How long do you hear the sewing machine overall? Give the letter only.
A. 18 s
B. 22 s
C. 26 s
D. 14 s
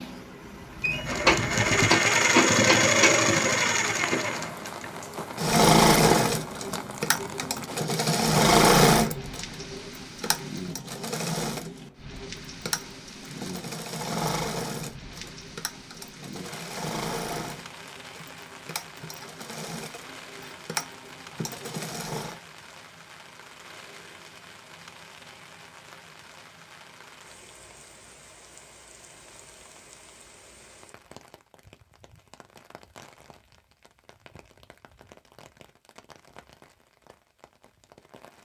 B.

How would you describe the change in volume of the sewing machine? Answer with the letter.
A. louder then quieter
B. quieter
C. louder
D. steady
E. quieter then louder
B.